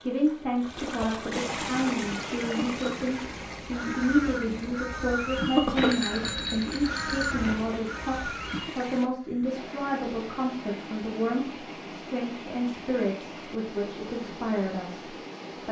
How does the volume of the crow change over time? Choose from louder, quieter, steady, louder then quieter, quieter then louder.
louder then quieter.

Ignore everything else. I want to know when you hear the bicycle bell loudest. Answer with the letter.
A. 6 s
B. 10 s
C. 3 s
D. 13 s
A.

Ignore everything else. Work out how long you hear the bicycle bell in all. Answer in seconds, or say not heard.
2 s.